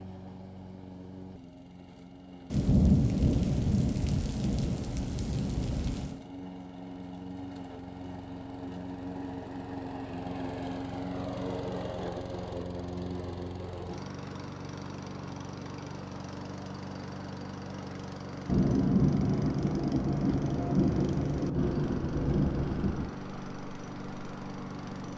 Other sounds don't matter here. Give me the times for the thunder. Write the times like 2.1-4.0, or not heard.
2.5-6.2, 18.4-23.1.